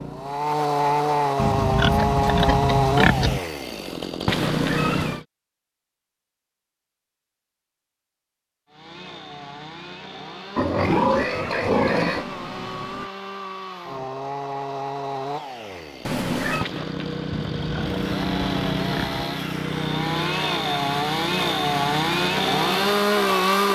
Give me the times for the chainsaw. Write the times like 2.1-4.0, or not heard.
0.0-5.2, 8.7-23.7.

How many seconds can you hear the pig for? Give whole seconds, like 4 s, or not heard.
6 s.